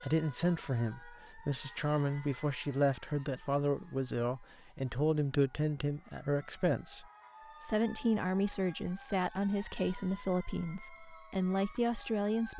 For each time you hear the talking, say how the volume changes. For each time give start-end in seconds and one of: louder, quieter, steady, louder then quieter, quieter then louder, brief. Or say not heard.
0.0-12.5 steady.